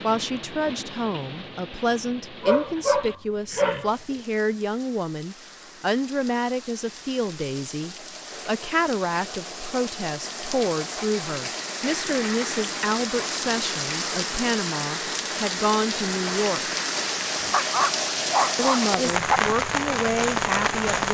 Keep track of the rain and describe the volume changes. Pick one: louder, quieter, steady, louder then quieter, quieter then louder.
louder.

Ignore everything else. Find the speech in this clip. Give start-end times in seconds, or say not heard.
0.0-16.8, 18.6-21.0.